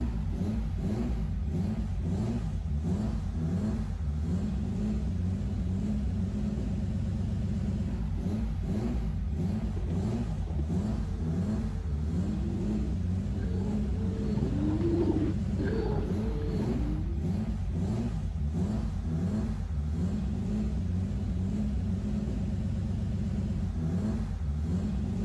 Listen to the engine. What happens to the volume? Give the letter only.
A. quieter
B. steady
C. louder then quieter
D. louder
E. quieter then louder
B.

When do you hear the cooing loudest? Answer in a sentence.
The volume of the cooing peaks at 15 seconds.